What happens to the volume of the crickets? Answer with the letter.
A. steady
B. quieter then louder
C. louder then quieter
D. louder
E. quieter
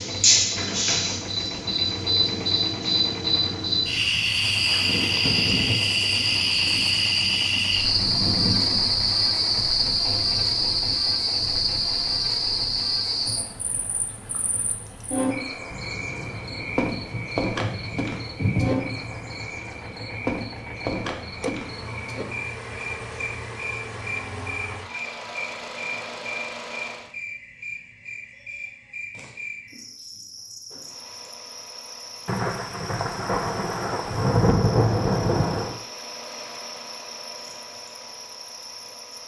E.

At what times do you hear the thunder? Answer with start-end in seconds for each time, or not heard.
4.8-8.8, 15.7-19.4, 32.2-35.8.